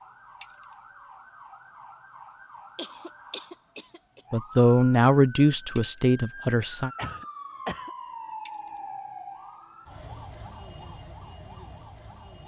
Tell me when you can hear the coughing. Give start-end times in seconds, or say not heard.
2.8-4.2, 7.0-7.9.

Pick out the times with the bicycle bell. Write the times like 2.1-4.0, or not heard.
0.4-0.9, 5.8-6.2, 8.4-9.0.